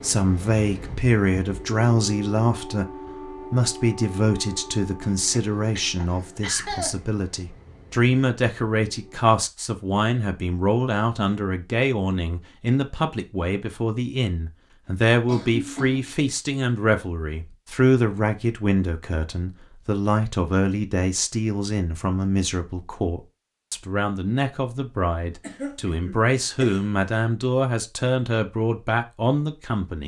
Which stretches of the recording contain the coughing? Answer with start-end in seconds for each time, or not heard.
5.0-7.0, 15.2-16.1, 25.4-26.8.